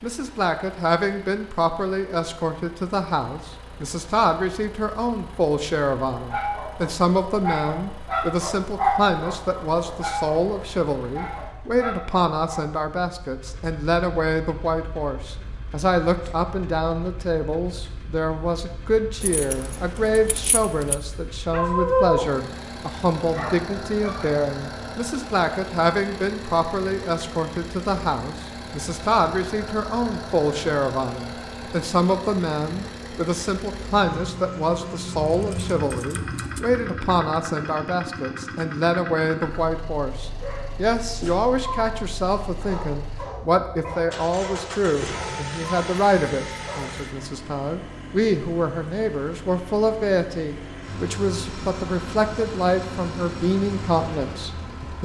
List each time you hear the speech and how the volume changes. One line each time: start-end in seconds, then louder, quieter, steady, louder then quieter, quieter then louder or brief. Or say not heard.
0.0-54.9 steady.